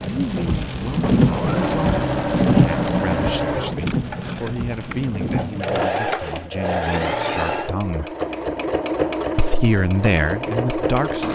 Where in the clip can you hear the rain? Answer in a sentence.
You can hear the rain from 0.0 to 5.8 s.